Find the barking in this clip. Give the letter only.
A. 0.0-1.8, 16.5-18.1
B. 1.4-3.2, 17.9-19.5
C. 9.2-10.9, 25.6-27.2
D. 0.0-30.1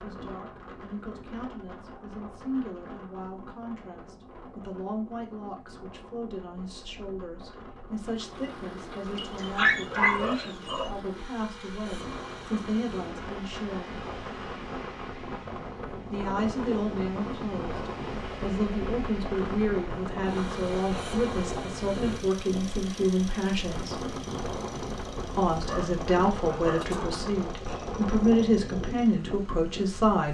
C.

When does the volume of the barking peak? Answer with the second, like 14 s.
10 s.